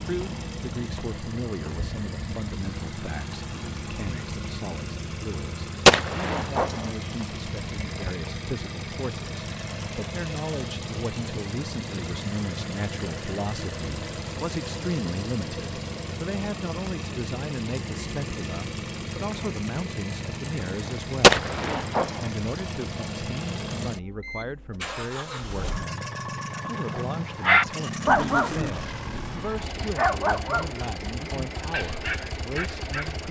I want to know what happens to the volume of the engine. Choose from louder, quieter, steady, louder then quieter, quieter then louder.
steady.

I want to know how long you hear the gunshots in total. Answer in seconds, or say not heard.
2 s.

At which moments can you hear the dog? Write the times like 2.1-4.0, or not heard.
26.9-33.2.